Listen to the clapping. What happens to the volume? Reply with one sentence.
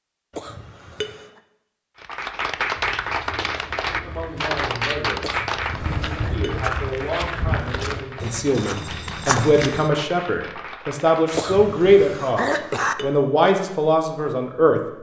The volume of the clapping goes down.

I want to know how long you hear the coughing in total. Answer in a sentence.
The coughing can be heard for 4 seconds in total.